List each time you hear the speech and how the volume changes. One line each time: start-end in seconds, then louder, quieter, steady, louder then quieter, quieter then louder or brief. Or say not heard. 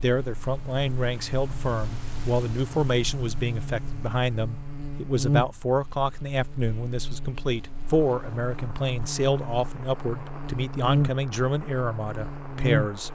0.0-13.1 steady.